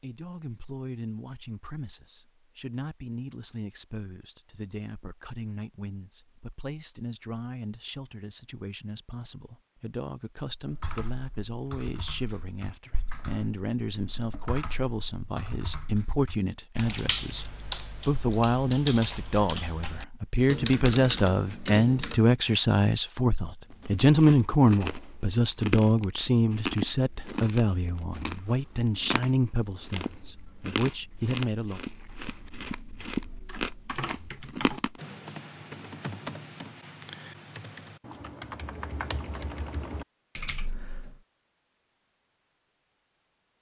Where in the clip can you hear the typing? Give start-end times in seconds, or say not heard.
10.6-22.2, 33.5-41.2.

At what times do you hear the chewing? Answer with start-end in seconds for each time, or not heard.
23.6-35.0.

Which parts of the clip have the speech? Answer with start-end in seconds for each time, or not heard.
0.0-31.8.